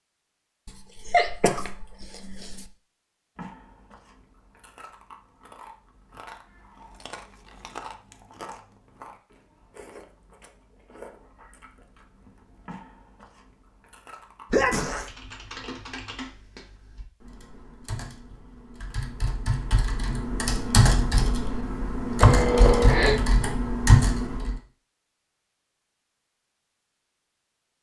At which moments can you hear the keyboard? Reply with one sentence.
The keyboard can be heard from 15.0 to 24.6 s.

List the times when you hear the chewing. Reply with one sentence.
The chewing can be heard from 3.4 to 14.7 s.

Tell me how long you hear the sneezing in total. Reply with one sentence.
The sneezing can be heard for 4 seconds in total.